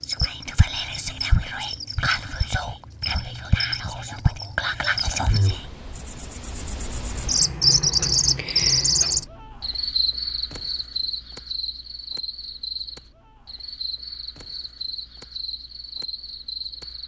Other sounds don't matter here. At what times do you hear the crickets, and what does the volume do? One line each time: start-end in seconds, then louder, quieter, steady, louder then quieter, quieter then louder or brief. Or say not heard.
0.0-17.0 louder then quieter.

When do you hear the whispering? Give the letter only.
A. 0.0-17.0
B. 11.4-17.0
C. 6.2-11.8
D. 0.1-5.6
D.